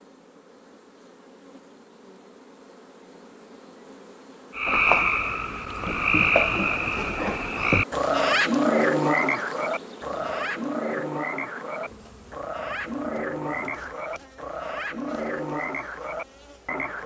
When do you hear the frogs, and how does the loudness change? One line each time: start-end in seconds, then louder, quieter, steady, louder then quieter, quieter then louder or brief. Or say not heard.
4.5-17.0 quieter.